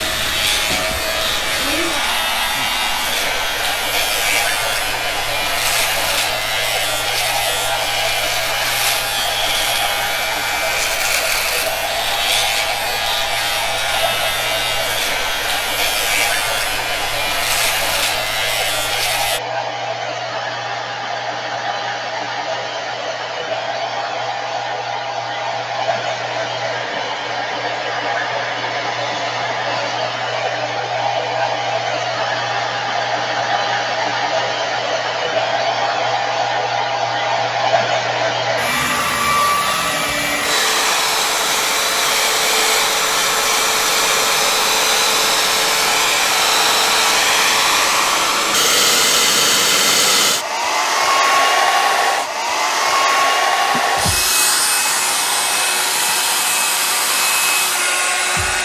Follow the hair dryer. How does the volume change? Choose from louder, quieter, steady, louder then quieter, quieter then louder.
louder.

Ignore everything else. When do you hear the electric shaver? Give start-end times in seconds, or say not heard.
0.0-19.4, 53.5-58.6.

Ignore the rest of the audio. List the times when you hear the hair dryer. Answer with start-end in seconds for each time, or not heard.
0.0-58.6.